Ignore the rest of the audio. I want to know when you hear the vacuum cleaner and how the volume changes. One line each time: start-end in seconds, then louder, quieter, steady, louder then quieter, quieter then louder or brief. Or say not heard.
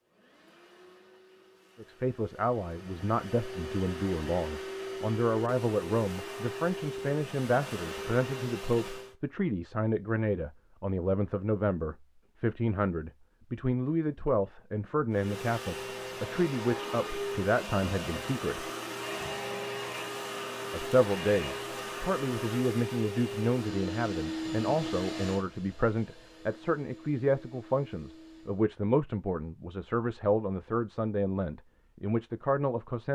0.0-9.2 louder
15.1-28.6 quieter.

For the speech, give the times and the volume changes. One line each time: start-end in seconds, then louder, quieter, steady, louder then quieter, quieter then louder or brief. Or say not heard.
1.8-18.6 steady
20.7-33.1 steady.